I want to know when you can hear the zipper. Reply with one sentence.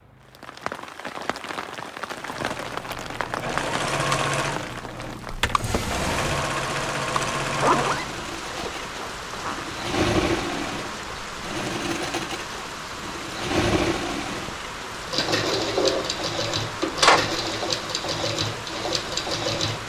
You can hear the zipper from 7.5 to 9.7 s.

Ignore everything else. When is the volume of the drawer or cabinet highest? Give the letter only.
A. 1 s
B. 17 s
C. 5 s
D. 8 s
B.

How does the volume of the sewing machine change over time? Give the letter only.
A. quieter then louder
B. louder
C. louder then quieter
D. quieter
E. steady
E.